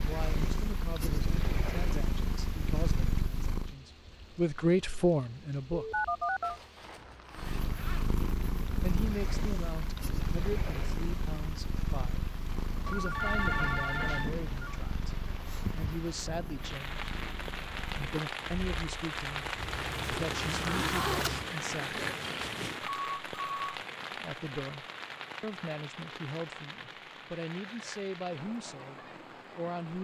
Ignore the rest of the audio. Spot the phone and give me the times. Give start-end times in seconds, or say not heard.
5.7-6.6, 12.8-14.8, 22.9-23.8.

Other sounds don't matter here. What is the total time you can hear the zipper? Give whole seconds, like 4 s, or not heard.
4 s.